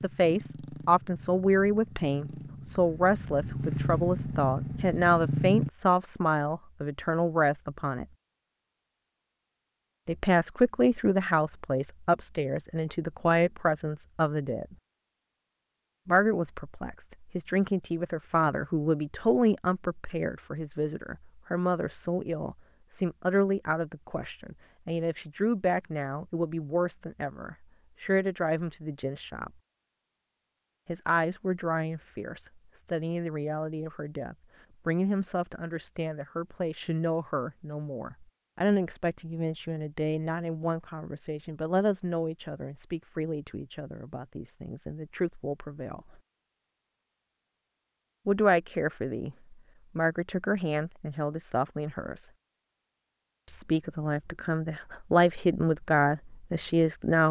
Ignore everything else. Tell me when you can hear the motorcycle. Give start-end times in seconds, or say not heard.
0.0-5.7.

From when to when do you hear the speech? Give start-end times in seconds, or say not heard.
0.0-8.1, 10.1-14.8, 16.1-29.5, 30.9-46.1, 48.2-52.2, 53.5-57.2.